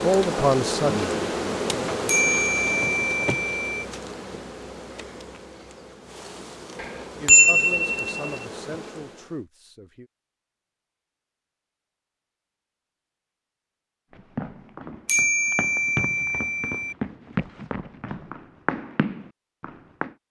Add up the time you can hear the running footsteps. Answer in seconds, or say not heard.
6 s.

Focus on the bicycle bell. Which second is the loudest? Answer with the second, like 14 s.
7 s.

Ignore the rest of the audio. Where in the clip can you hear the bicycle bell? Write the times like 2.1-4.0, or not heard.
2.0-3.9, 6.8-8.4, 15.1-16.9.